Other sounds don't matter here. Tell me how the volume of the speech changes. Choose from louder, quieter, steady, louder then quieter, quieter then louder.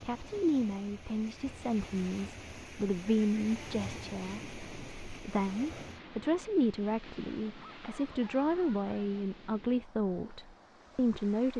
steady.